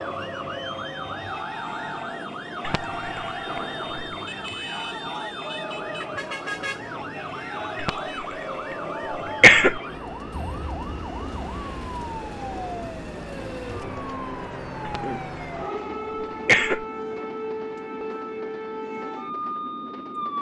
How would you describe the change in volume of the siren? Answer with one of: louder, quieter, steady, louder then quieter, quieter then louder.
steady.